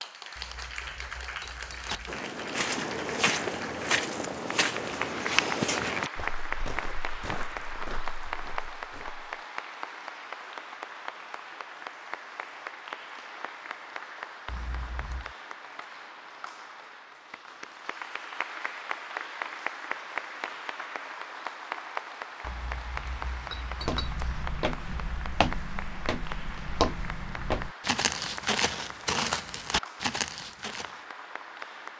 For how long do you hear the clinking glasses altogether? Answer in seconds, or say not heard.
5 s.